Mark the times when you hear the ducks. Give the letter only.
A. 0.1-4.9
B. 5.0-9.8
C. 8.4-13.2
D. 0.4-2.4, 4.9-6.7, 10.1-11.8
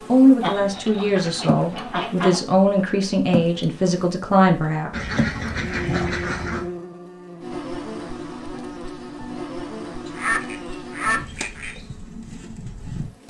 D.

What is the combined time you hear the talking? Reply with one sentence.
You can hear the talking for 5 seconds altogether.